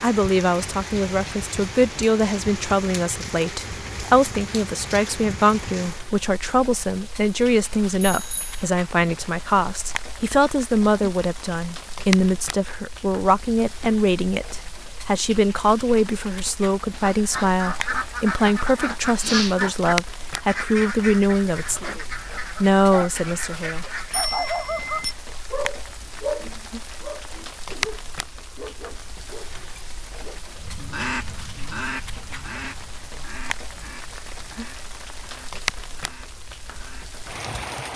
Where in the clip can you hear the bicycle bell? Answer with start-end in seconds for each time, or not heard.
8.1-8.6, 24.1-25.1.